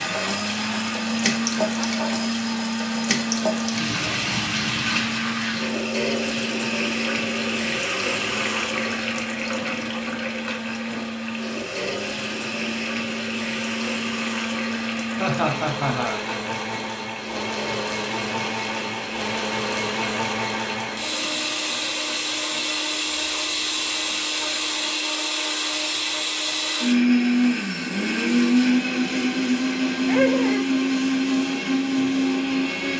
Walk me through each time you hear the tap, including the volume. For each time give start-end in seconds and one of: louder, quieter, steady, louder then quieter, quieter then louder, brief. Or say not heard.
0.0-32.9 quieter.